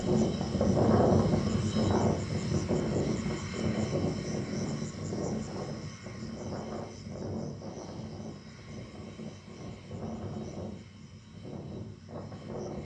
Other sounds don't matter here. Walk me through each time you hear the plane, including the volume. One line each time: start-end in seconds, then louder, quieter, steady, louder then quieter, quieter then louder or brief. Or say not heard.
0.0-12.8 quieter.